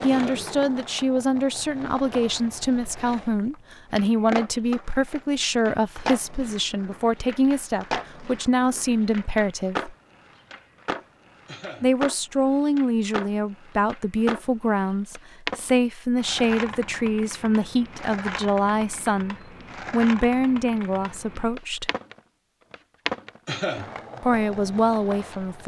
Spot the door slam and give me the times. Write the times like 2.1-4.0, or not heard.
not heard.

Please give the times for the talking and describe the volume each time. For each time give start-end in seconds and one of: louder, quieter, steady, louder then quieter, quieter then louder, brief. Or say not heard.
0.0-9.9 steady
11.8-21.9 steady
24.2-25.6 brief.